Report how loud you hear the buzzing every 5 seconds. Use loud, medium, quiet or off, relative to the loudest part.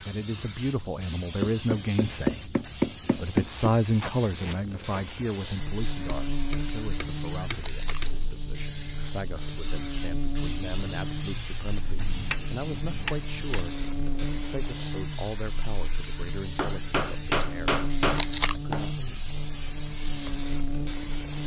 off, loud, loud, loud, loud.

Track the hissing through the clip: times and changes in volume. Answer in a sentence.
The hissing can be heard from 0.0 to 21.4 s, at a steady volume.